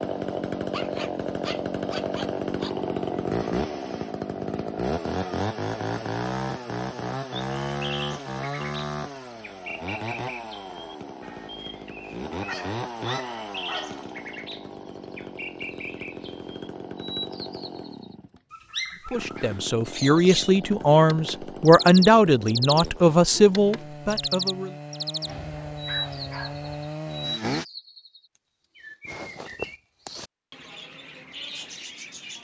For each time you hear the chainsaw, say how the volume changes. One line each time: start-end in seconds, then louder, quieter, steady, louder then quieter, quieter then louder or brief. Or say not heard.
0.0-27.6 quieter.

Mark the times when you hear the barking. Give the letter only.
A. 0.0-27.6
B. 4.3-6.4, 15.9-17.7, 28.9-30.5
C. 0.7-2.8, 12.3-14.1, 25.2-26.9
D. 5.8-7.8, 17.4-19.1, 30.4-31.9
C.